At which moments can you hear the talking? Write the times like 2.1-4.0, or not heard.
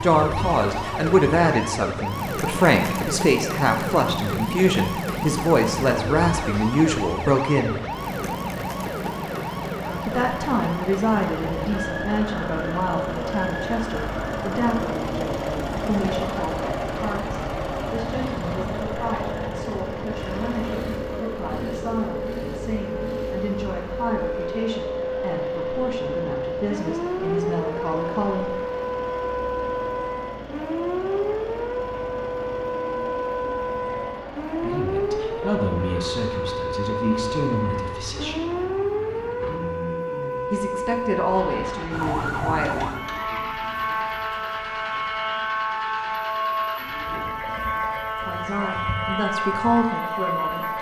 0.0-7.8, 10.1-28.6, 34.6-38.4, 40.5-43.0, 48.2-50.7.